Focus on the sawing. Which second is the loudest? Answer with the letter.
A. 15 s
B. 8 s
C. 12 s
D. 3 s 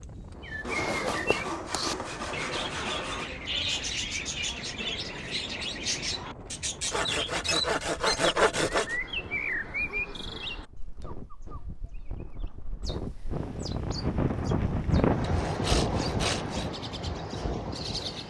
B.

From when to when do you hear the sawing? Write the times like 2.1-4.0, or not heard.
0.6-3.3, 6.9-8.9, 15.2-16.7.